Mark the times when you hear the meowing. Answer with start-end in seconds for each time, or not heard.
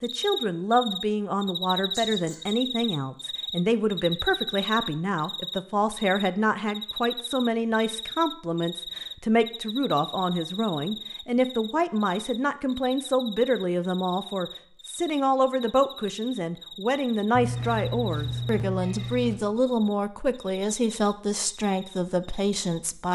1.9-2.5, 17.3-19.4.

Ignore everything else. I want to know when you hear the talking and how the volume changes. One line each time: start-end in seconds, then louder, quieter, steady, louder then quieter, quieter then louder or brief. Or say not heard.
0.0-23.1 steady.